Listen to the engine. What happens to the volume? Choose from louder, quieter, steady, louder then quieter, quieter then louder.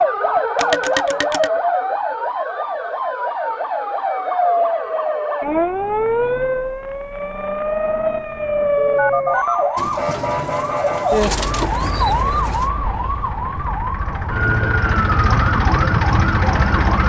louder.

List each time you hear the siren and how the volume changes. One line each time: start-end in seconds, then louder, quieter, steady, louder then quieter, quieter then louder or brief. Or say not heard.
0.0-17.0 steady.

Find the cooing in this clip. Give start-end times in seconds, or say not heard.
9.8-12.7.